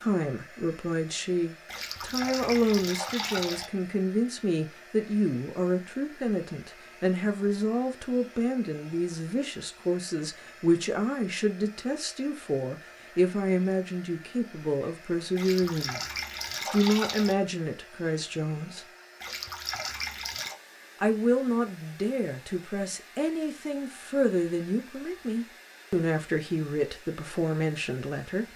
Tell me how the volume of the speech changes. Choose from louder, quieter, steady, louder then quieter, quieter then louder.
steady.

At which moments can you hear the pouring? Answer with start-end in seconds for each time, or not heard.
1.6-3.7, 15.3-17.4, 19.2-20.6.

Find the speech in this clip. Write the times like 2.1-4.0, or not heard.
0.0-18.9, 21.0-28.4.